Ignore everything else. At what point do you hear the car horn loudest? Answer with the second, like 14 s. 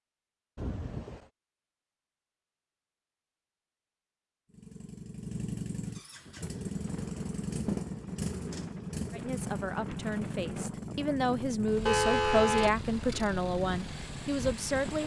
12 s.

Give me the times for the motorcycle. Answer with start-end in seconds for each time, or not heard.
4.5-15.0.